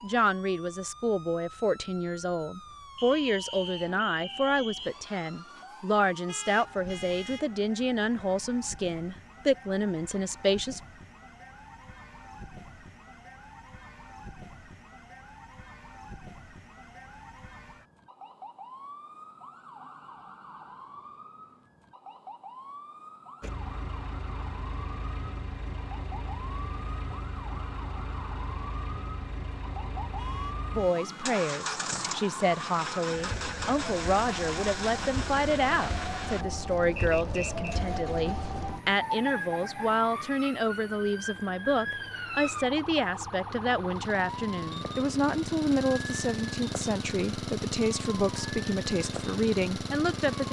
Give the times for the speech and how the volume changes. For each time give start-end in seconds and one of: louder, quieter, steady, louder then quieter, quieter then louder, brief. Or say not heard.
0.0-10.8 steady
30.8-50.4 steady.